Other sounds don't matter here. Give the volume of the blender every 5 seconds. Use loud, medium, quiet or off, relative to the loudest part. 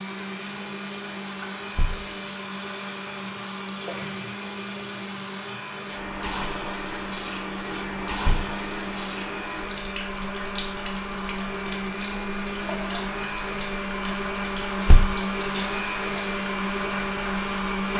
medium, medium, loud, loud.